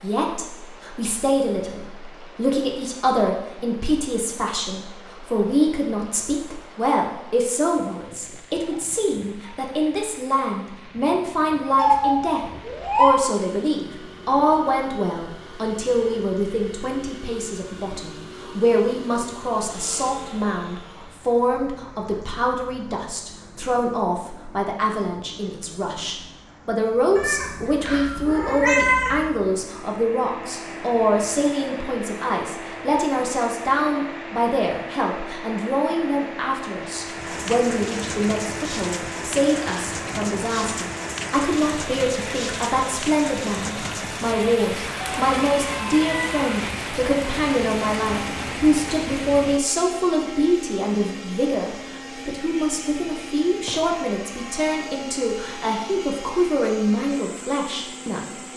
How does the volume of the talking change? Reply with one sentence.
The volume of the talking stays about the same.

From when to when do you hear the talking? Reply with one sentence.
You can hear the talking from 0.0 to 58.4 s.